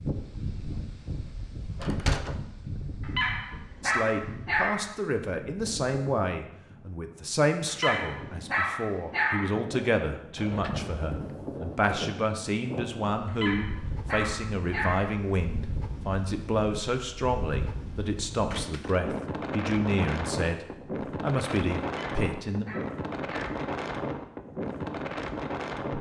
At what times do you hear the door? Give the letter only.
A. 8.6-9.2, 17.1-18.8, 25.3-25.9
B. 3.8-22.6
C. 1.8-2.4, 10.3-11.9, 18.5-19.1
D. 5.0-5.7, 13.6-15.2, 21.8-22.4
C.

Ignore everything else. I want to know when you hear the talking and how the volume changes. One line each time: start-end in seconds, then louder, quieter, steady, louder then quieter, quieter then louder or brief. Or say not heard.
3.8-22.6 steady.